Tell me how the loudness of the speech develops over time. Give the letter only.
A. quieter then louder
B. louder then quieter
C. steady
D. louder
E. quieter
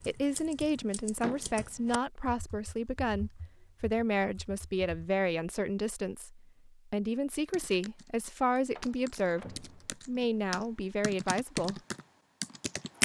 C.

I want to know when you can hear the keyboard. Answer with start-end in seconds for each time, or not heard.
0.0-5.1, 7.5-13.0.